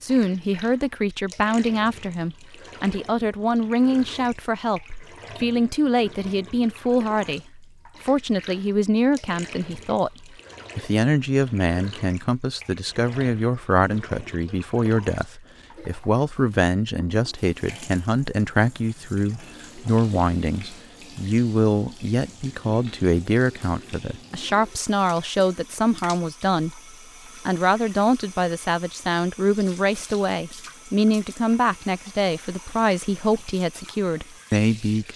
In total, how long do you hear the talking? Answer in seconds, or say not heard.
35 s.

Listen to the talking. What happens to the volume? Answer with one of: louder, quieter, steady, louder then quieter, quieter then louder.
steady.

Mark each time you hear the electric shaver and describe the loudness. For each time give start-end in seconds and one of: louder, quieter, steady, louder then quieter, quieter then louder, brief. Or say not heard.
not heard.